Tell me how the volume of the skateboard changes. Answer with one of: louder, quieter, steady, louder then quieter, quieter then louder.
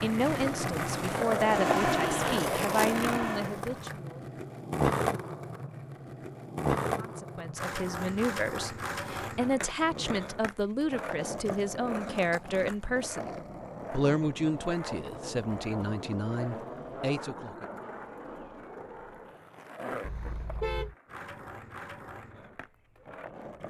quieter.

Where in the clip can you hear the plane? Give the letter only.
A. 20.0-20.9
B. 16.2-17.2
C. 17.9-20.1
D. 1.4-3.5
D.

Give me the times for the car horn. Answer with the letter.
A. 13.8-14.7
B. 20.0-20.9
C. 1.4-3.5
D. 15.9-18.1
B.